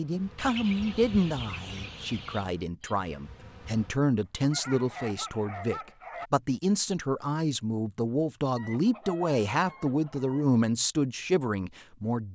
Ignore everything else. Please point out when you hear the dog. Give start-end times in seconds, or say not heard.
4.5-6.3.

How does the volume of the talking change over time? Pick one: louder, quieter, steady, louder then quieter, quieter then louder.
steady.